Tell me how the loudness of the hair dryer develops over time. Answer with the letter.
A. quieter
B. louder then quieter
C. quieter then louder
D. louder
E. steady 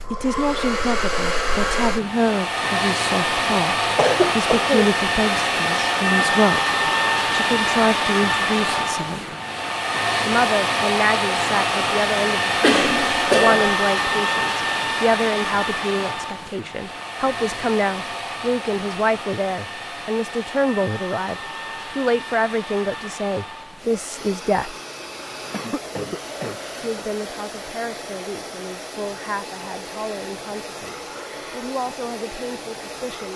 A.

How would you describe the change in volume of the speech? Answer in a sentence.
The volume of the speech goes down.